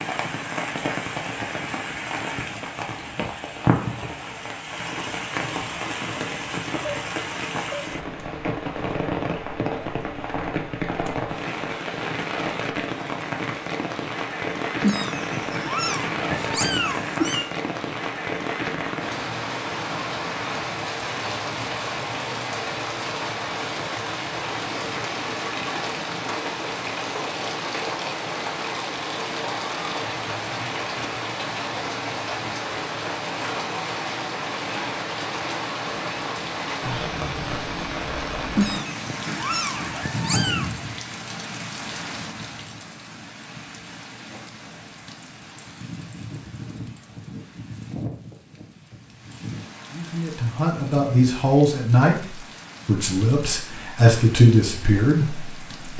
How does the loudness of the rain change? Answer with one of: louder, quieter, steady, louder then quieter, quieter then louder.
quieter.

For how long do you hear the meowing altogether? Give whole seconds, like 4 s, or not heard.
5 s.